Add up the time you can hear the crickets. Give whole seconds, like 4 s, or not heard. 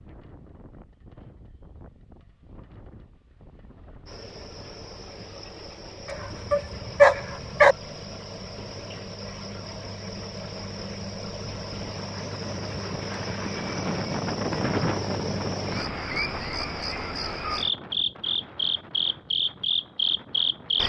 17 s.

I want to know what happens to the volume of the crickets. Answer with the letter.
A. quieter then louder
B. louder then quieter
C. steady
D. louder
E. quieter
D.